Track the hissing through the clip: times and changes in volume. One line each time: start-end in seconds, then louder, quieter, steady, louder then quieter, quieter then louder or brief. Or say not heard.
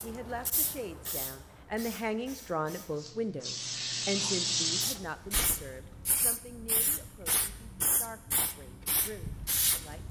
0.0-10.0 louder then quieter.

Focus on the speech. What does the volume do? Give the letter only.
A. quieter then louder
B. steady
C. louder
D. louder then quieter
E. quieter
E.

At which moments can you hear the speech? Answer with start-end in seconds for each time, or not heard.
0.0-10.0.